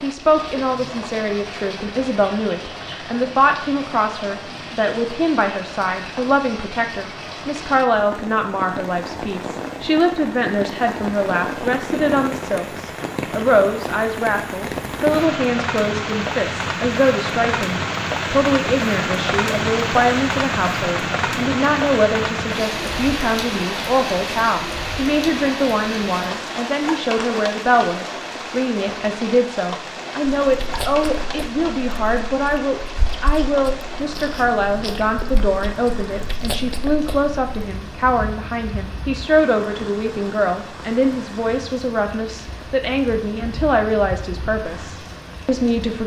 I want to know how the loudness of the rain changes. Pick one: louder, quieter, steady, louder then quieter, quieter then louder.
louder then quieter.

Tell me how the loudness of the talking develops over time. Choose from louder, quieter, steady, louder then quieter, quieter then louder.
steady.